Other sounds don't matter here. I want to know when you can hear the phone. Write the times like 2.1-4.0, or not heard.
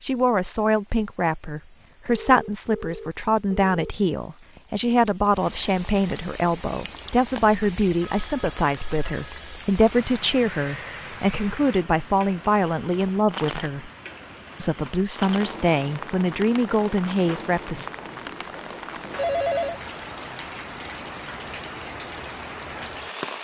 2.0-4.0, 8.0-9.5, 19.1-19.8.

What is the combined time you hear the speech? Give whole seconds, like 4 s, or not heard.
17 s.